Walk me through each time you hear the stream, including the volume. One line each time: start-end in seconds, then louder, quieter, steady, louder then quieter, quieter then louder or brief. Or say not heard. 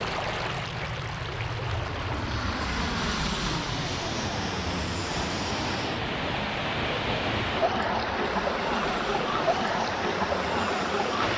0.0-11.3 louder.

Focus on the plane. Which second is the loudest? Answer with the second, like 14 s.
3 s.